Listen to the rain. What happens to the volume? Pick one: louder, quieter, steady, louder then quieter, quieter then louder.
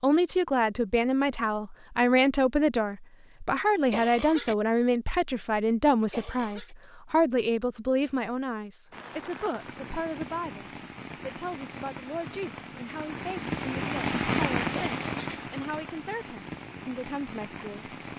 louder then quieter.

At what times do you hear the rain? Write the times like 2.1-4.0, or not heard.
8.9-18.1.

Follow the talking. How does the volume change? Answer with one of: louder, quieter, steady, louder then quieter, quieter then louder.
quieter.